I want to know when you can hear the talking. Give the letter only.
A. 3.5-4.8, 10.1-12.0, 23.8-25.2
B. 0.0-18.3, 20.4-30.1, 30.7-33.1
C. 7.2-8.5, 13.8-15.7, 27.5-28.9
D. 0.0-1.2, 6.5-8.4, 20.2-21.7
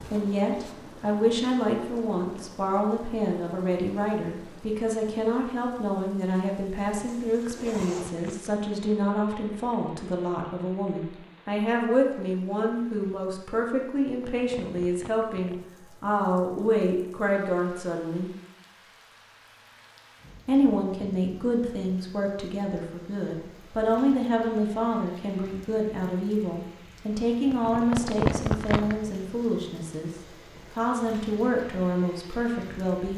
B.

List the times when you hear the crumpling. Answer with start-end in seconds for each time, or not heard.
7.2-8.5, 13.8-15.7, 27.5-28.9.